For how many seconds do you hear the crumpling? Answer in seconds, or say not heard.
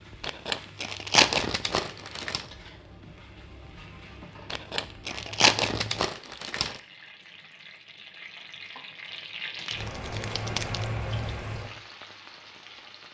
6 s.